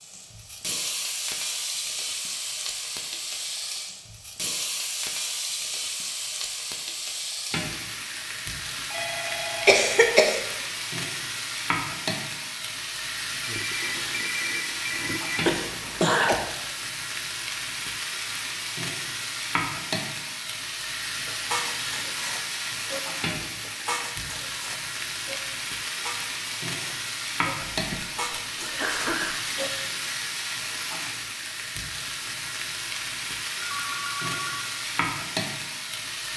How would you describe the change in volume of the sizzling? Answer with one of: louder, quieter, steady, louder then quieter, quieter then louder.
steady.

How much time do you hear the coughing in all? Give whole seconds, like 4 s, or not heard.
3 s.